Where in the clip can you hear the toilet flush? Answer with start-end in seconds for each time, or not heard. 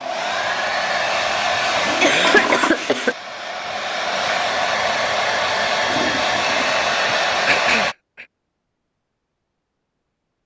1.8-2.7, 5.8-6.9.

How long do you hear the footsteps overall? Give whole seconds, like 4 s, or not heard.
not heard.